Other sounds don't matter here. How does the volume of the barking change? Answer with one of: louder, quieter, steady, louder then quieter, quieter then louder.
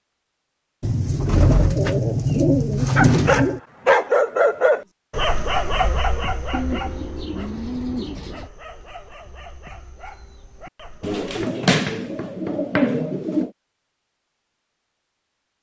quieter.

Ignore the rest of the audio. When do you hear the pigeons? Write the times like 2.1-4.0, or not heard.
0.8-3.6, 6.5-8.5, 11.0-13.5.